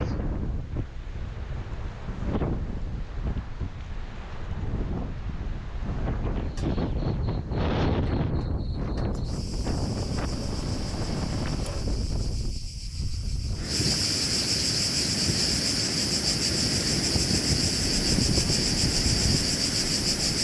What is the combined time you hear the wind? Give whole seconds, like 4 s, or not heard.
20 s.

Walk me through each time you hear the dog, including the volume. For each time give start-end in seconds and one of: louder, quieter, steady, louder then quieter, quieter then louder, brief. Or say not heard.
not heard.